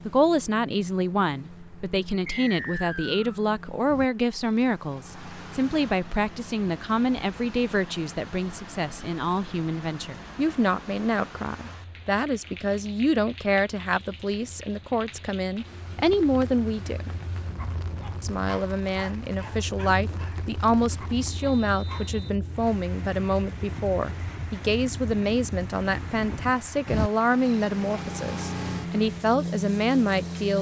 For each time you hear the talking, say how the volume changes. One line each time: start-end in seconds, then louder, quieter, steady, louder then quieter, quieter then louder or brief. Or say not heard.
0.1-17.1 steady
18.2-30.5 steady.